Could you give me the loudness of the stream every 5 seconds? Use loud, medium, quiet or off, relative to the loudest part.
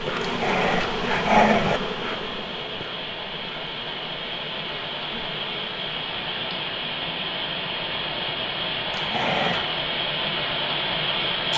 medium, loud, loud.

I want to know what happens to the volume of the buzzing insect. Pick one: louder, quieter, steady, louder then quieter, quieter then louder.
quieter.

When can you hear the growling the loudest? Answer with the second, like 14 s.
1 s.